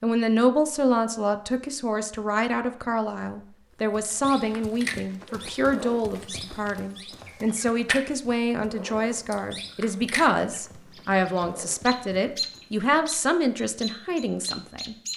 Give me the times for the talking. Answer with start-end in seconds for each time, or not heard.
0.0-14.9.